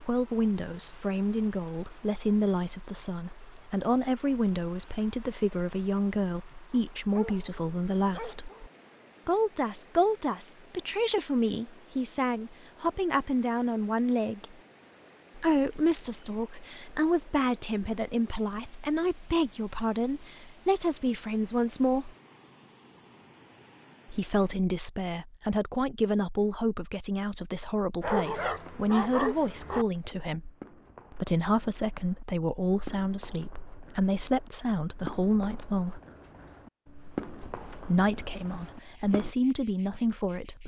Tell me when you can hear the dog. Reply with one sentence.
The dog can be heard from 6.7 to 8.7 s and from 28.0 to 29.9 s.